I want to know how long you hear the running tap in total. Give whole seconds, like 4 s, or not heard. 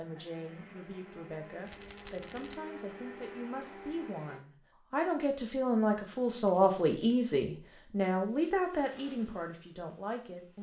not heard.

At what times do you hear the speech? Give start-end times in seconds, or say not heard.
0.0-10.5.